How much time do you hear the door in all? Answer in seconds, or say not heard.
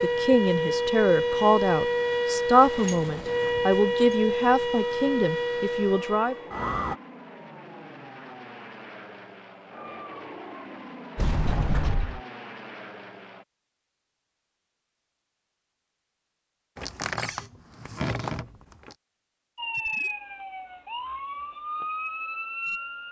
5 s.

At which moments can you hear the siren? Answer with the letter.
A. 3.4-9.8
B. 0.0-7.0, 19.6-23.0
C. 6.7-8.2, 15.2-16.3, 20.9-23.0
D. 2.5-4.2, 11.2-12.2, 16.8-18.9
B.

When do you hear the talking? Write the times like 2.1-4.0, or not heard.
0.0-6.3.